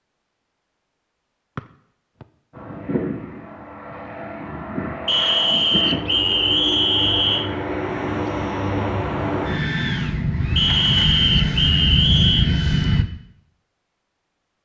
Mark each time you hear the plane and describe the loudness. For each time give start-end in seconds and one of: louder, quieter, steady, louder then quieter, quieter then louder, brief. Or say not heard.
2.5-13.1 louder.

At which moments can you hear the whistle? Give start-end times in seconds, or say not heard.
5.0-7.5, 10.6-12.5.